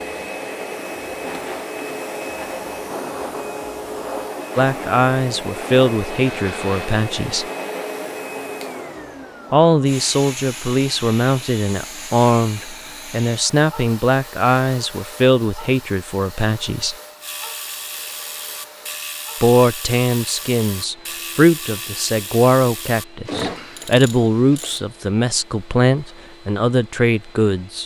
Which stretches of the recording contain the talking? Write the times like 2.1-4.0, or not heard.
4.5-7.5, 9.5-16.9, 19.4-27.8.